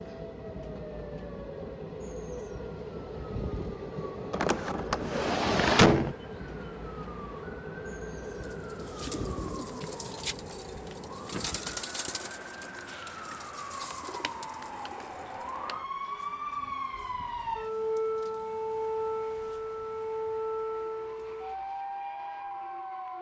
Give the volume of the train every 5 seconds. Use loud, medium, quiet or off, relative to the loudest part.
loud, loud, medium, quiet, medium.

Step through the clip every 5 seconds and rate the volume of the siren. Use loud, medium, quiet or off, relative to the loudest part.
quiet, quiet, medium, loud, loud.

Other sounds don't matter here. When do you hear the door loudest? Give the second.
6 s.